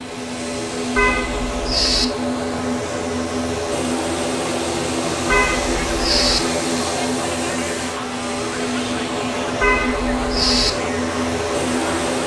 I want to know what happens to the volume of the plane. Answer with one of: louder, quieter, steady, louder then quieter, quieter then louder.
steady.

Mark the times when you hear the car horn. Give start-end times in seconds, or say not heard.
0.9-2.0, 5.2-6.4, 9.6-10.7.